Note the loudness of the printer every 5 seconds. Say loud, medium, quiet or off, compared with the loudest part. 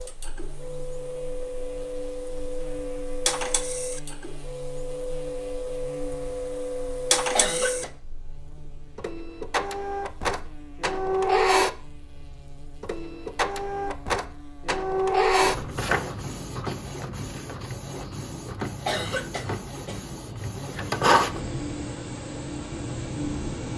medium, loud, loud, loud, loud.